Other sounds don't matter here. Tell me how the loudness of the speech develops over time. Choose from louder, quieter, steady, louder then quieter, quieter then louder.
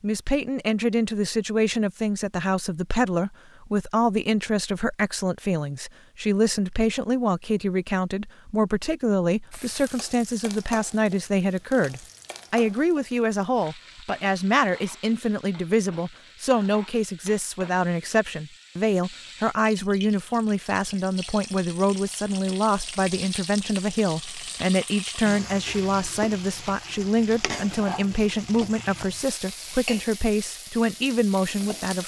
steady.